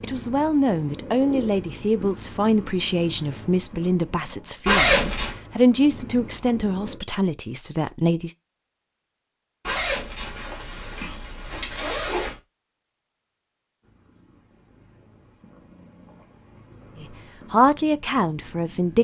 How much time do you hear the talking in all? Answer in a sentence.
The talking can be heard for 10 seconds in total.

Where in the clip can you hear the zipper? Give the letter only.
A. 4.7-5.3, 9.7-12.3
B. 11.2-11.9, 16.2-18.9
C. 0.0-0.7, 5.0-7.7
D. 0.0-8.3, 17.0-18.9
A.